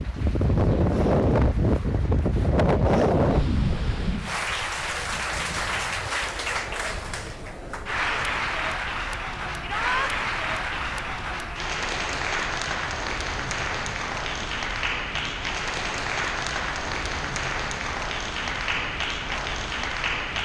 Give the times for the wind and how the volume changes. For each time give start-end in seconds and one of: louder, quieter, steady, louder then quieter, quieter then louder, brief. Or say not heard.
0.0-20.3 quieter.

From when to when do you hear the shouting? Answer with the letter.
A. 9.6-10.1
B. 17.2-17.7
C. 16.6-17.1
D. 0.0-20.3
A.